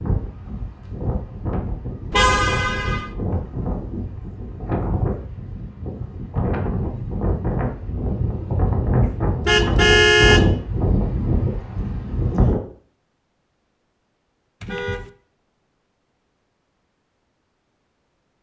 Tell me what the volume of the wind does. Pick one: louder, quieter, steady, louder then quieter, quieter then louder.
louder.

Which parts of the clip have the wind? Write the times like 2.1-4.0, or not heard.
0.0-12.6.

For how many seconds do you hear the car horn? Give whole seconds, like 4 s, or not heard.
3 s.